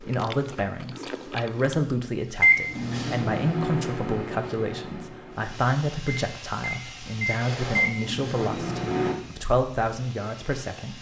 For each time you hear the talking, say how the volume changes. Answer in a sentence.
You can hear the talking from 0.0 to 10.9 s, at a steady volume.